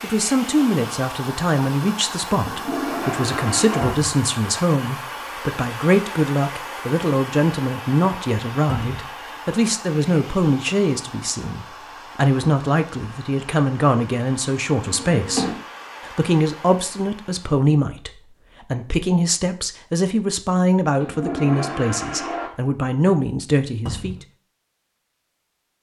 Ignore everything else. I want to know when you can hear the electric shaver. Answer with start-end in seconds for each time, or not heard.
not heard.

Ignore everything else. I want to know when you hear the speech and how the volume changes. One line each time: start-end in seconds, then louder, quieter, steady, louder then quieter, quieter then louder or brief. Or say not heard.
0.0-24.1 steady.